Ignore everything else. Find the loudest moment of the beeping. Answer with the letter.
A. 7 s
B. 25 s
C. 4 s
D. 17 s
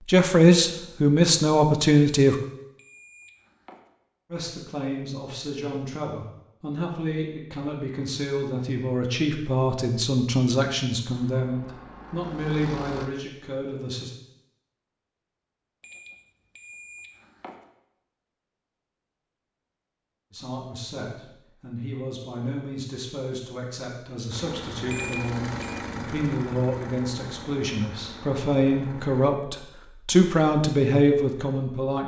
B.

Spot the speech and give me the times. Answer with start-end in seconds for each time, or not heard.
0.1-2.4, 4.3-14.1, 20.3-32.0.